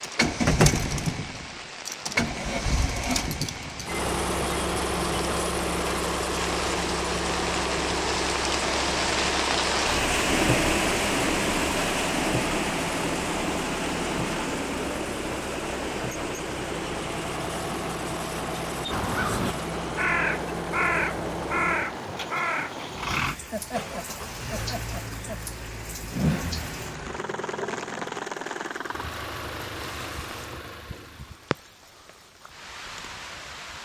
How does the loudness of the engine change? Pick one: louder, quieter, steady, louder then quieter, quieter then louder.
quieter.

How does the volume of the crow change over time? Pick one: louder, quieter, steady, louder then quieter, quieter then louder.
quieter.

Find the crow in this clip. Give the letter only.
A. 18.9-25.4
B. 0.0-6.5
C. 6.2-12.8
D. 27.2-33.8
A.